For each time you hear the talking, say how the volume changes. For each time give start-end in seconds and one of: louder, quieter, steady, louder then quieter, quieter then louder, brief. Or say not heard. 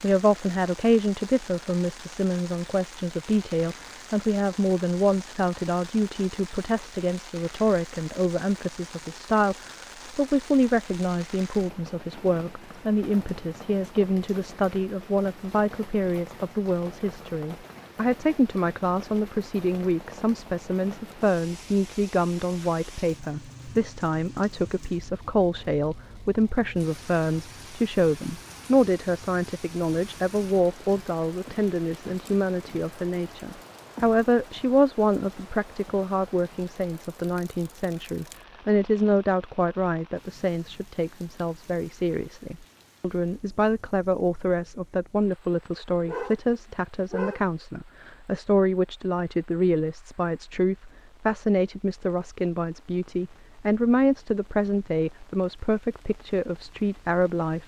0.0-57.6 steady.